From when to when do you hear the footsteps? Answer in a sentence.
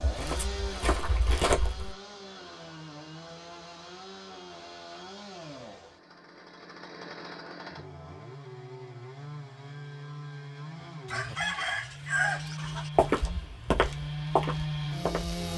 You can hear the footsteps from 0.0 to 1.9 s and from 12.9 to 15.4 s.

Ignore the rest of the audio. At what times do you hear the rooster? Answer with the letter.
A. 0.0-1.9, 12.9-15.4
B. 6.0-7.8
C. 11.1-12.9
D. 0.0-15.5
C.